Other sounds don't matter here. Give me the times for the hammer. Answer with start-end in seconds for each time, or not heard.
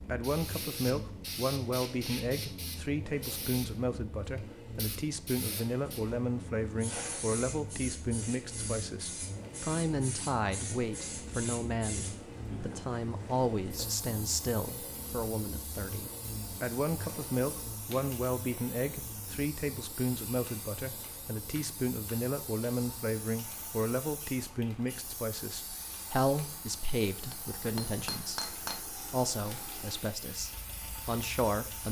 27.3-28.9.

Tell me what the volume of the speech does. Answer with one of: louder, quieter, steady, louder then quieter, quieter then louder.
steady.